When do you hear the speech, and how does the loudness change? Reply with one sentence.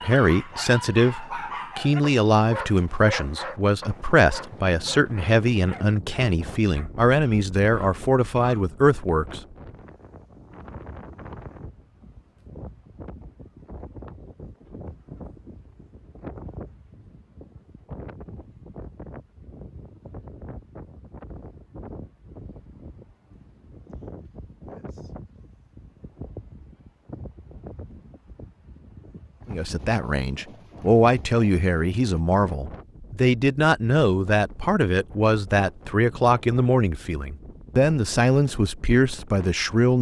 You can hear the speech from 0.0 to 9.4 s, at a steady volume; and from 29.5 to 39.9 s, at a steady volume.